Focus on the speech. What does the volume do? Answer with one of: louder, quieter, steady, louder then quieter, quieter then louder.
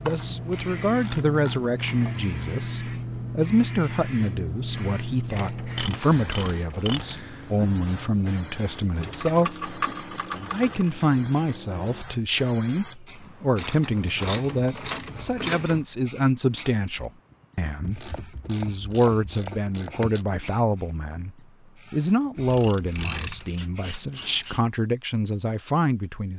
steady.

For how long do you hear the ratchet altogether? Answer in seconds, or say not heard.
13 s.